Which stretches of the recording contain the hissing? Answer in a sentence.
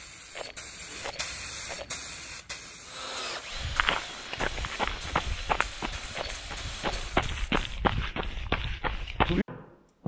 You can hear the hissing from 0.0 to 7.9 s.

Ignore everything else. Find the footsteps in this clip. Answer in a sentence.
You can hear the footsteps from 3.5 to 10.0 s.